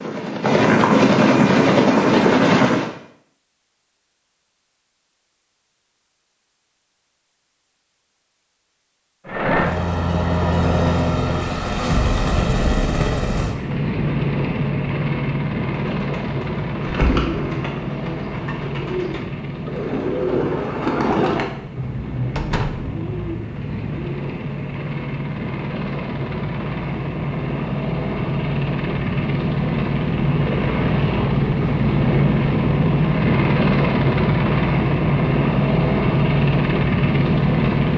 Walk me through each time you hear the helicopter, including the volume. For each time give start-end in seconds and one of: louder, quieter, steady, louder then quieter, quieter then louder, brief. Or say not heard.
0.0-3.0 brief
9.2-37.9 quieter then louder.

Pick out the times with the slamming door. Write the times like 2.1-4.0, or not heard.
22.4-22.9.